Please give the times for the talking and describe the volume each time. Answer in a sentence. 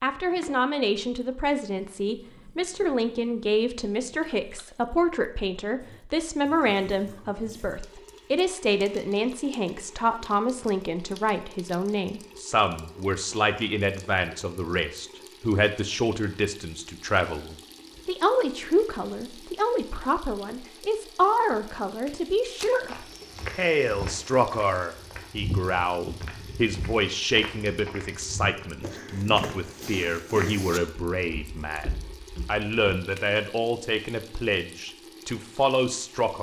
You can hear the talking from 0.0 to 36.3 s, at a steady volume.